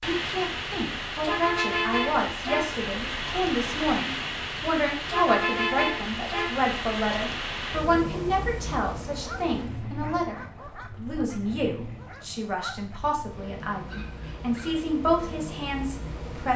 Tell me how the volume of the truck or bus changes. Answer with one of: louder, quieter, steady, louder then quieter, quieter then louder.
quieter.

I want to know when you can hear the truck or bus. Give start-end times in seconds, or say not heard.
0.0-16.5.